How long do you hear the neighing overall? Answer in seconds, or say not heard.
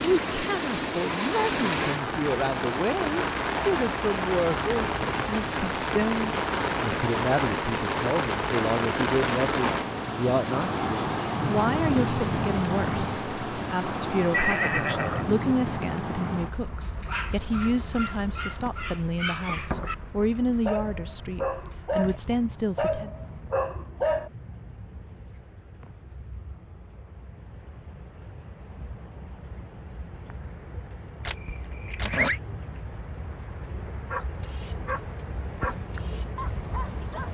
2 s.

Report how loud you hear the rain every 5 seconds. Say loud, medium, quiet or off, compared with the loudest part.
loud, loud, loud, medium, quiet, quiet, quiet, medium.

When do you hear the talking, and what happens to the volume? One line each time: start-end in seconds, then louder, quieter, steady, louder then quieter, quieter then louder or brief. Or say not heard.
0.0-23.1 steady.